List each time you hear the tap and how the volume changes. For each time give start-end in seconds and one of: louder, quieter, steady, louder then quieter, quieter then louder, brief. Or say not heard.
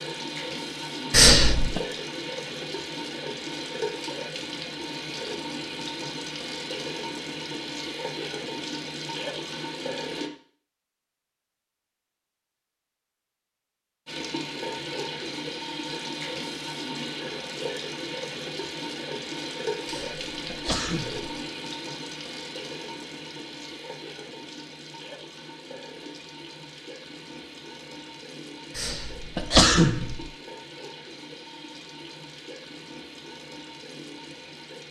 0.0-10.3 steady
14.1-34.8 quieter.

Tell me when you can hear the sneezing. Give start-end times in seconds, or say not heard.
1.1-1.8, 19.9-21.4, 28.8-30.2.